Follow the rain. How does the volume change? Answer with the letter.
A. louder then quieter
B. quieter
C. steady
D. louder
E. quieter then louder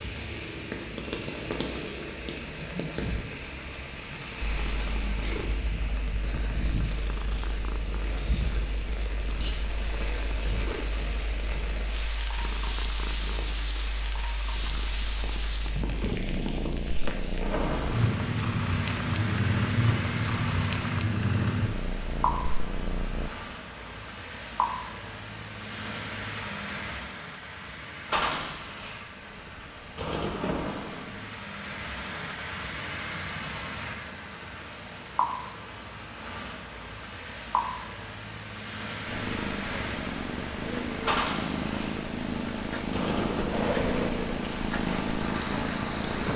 C.